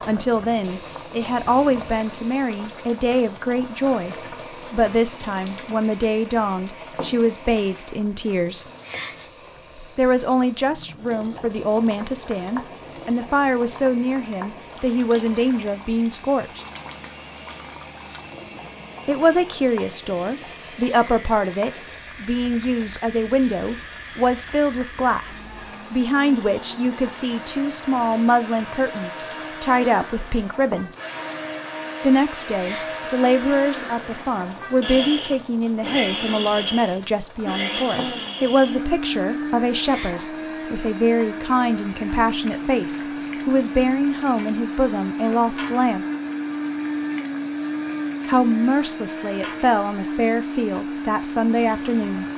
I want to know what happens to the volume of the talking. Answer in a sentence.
The loudness of the talking stays about the same.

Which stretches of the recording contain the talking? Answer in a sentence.
The talking can be heard from 0.1 to 8.7 s, from 9.9 to 16.6 s, from 19.1 to 30.9 s, from 32.0 to 46.0 s and from 48.2 to 52.2 s.